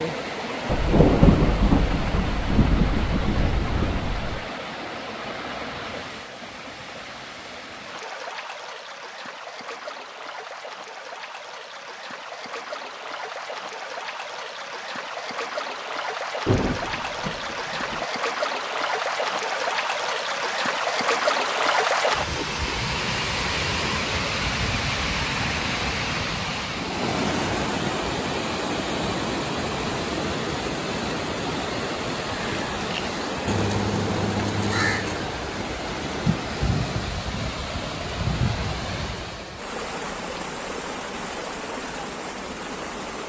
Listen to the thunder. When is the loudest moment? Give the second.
1 s.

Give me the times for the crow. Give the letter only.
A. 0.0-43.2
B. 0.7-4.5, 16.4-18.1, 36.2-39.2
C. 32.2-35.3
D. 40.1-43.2
C.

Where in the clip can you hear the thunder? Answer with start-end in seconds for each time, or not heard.
0.7-4.5, 16.4-18.1, 36.2-39.2.